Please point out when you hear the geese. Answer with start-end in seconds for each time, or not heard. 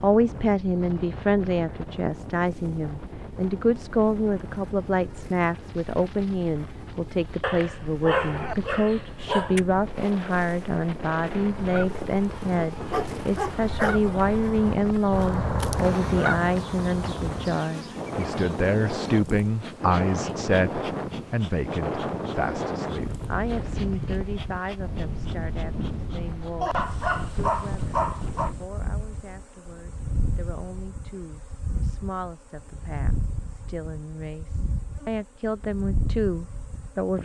11.3-17.5.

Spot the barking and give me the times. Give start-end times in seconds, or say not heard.
7.4-9.7, 12.8-14.0, 26.6-28.5.